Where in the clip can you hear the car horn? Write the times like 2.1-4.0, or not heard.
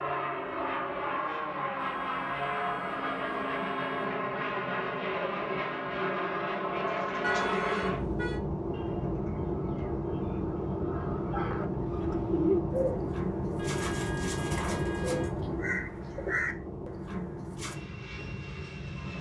1.8-4.2, 7.2-8.4, 13.6-15.3.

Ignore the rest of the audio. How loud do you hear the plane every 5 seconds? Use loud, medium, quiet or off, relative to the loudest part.
loud, loud, loud, medium.